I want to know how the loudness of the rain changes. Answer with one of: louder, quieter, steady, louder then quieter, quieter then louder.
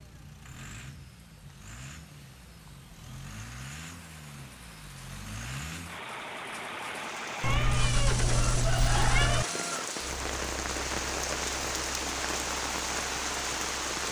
louder.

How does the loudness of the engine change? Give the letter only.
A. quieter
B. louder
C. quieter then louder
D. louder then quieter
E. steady
D.